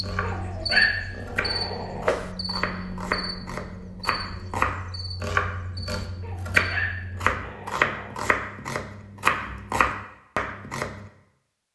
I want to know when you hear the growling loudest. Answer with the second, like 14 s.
1 s.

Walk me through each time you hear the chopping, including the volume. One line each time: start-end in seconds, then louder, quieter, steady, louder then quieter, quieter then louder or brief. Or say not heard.
0.0-11.1 louder.